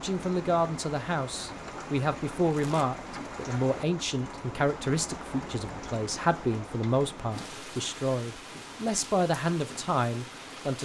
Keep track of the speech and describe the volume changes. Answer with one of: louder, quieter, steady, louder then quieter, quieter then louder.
steady.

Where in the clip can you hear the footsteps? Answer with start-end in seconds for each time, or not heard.
not heard.